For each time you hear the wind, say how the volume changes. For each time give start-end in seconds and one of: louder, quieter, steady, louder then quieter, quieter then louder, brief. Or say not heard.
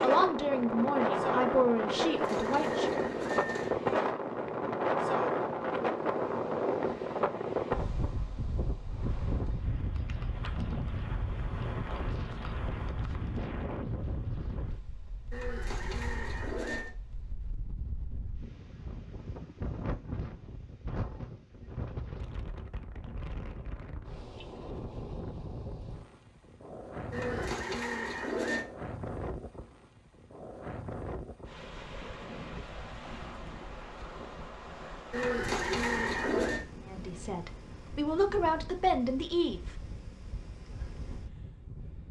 0.0-42.0 quieter.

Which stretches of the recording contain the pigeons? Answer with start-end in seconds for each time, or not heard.
1.9-3.8, 15.3-16.9, 27.1-28.6, 35.1-36.6.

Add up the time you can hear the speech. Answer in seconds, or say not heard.
6 s.